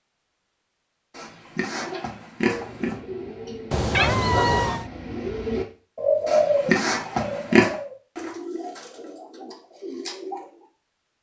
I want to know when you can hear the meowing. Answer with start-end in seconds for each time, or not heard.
3.7-4.8.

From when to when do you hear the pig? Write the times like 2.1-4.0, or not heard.
1.1-3.0, 6.2-7.8.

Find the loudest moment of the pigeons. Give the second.
6 s.